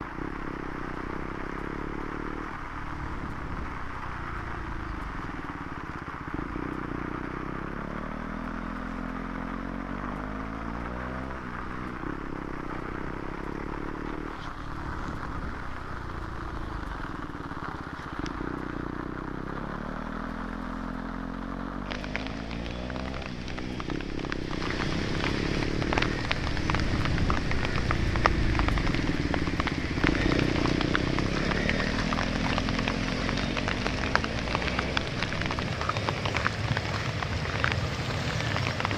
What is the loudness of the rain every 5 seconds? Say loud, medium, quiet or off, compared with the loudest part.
medium, medium, medium, medium, medium, loud, loud, loud.